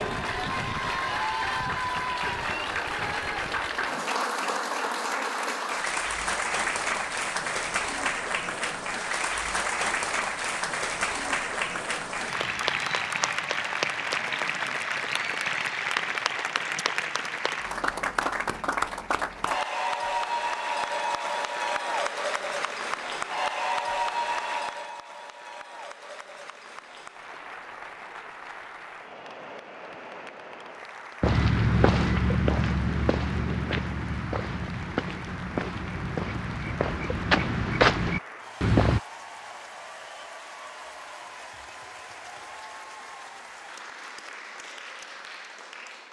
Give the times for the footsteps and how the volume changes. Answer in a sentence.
You can hear the footsteps from 31.2 to 39.0 s, getting quieter then louder.